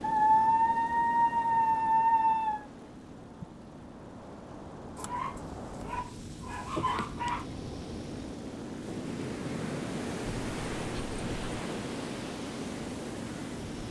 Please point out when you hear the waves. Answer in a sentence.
You can hear the waves from 0.0 to 13.8 s.